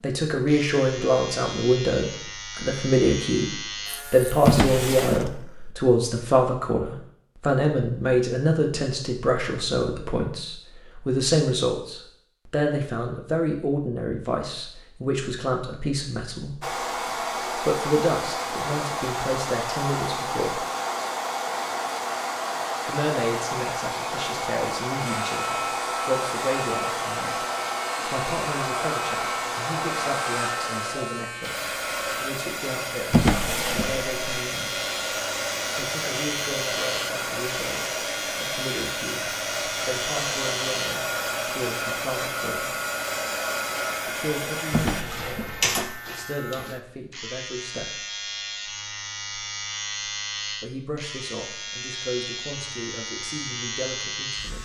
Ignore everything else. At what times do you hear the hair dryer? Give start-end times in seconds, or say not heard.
16.6-45.0.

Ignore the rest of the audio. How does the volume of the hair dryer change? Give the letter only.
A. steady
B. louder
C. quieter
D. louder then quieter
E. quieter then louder
A.